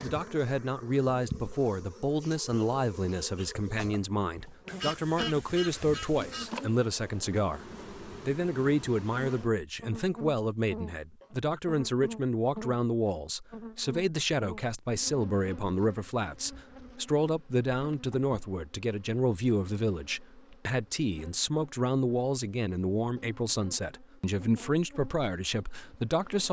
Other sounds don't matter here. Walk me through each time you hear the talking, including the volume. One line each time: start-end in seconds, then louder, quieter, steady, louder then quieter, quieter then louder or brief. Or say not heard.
0.0-26.4 steady.